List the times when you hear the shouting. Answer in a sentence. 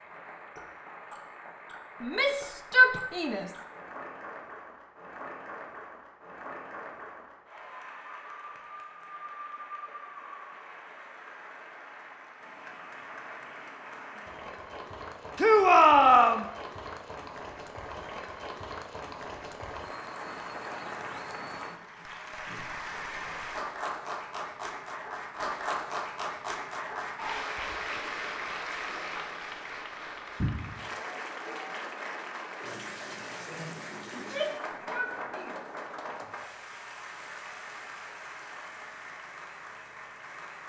The shouting can be heard from 2.0 to 3.5 s, from 15.3 to 16.4 s and from 34.1 to 35.5 s.